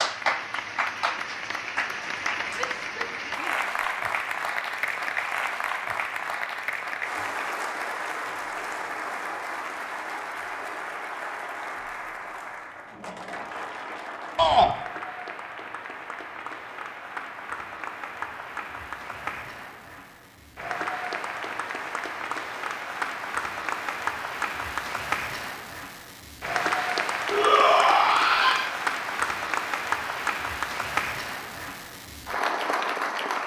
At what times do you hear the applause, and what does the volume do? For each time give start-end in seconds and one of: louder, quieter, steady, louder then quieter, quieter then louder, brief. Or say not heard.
0.0-33.4 quieter then louder.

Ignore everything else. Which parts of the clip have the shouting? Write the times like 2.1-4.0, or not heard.
2.5-3.6, 14.3-14.8, 27.3-28.7.